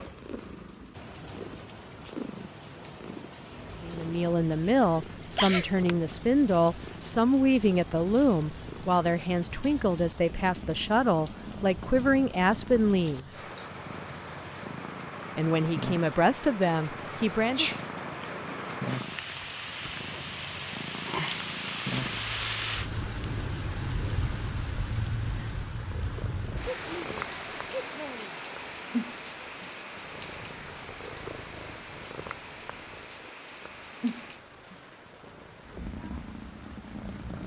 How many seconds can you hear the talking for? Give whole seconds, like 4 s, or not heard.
12 s.